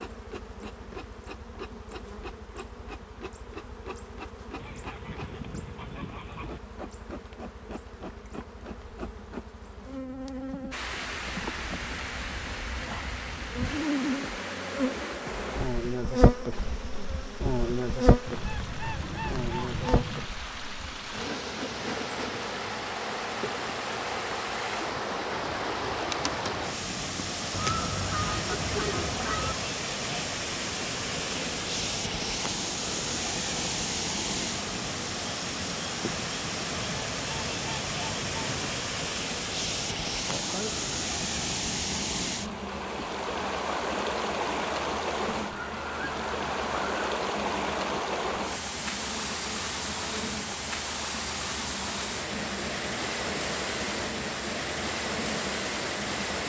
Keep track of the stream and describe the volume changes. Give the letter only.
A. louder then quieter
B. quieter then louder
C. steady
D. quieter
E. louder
E.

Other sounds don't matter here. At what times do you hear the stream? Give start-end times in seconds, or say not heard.
10.7-56.4.